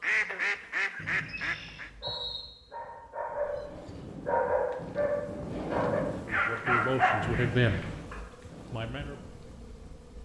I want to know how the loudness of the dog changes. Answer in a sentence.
The loudness of the dog goes up.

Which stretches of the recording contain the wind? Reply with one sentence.
The wind can be heard from 3.2 to 10.2 s.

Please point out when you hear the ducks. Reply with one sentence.
The ducks can be heard from 0.0 to 1.9 s and from 6.2 to 7.8 s.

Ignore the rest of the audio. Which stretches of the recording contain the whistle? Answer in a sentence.
You can hear the whistle from 0.9 to 2.5 s and from 7.2 to 8.2 s.